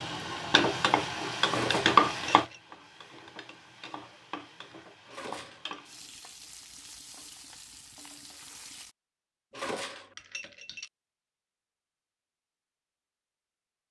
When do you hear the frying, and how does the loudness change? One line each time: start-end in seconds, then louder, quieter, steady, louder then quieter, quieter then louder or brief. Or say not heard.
0.0-8.9 quieter.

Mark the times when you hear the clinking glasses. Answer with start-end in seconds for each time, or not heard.
1.4-2.6, 5.0-5.8, 9.5-10.9.